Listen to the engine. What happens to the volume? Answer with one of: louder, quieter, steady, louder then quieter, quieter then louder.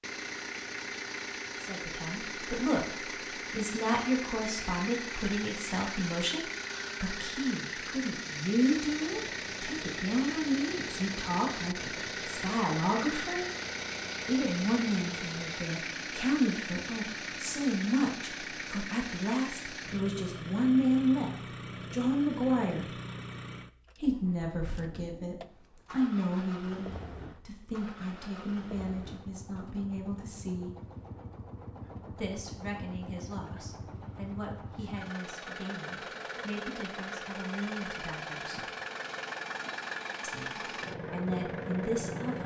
quieter then louder.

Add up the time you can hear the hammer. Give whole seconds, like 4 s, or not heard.
not heard.